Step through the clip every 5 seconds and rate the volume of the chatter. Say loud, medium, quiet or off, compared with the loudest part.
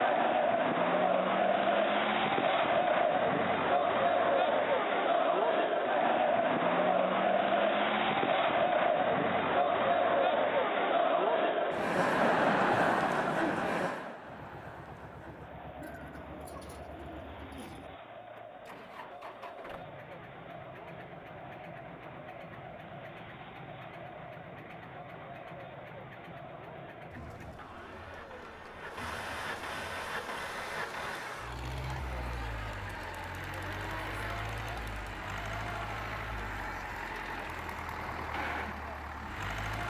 loud, loud, loud, quiet, quiet, quiet, quiet, quiet.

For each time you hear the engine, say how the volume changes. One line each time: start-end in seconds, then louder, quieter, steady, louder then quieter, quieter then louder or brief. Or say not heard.
14.2-39.8 louder.